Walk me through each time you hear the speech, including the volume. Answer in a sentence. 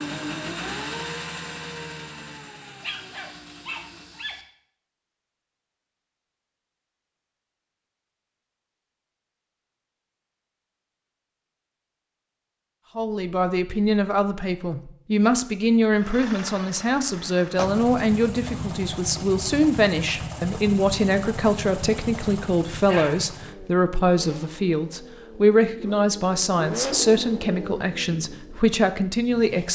The speech can be heard from 12.9 to 29.7 s, at a steady volume.